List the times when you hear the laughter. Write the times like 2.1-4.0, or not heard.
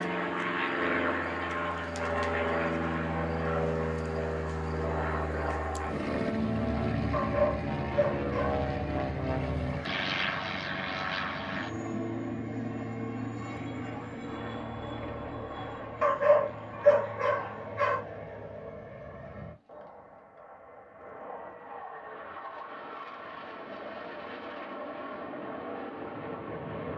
not heard.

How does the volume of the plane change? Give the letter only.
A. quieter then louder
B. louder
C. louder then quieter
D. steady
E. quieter
E.